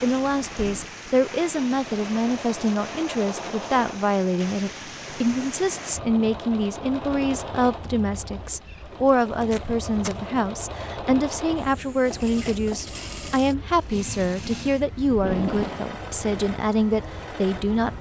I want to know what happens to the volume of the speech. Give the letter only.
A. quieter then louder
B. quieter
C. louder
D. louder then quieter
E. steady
E.